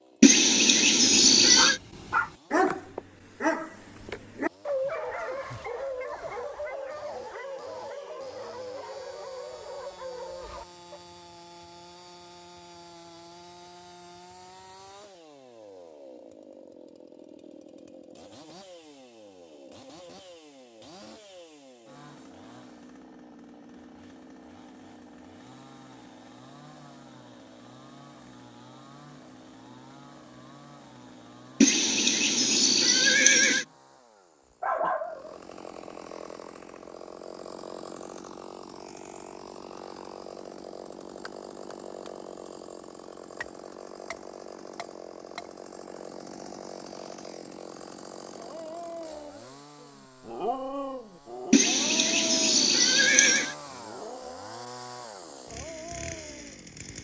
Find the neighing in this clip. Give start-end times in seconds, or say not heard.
0.2-1.8, 31.6-33.6, 51.5-53.5.